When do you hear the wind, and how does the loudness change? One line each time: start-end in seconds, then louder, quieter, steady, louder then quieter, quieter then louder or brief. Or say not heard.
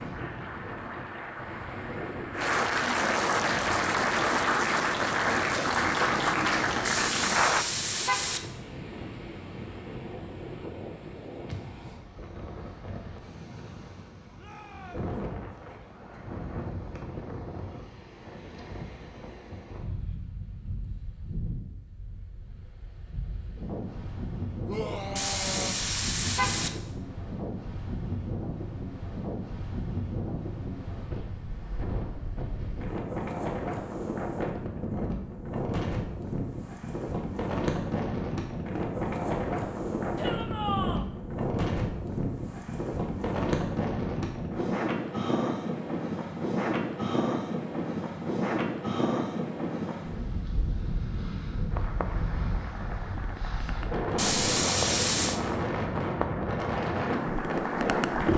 0.0-58.3 louder.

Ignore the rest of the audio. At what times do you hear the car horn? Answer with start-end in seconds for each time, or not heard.
6.8-8.5, 25.1-26.8, 54.1-55.4.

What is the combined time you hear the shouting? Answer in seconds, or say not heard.
3 s.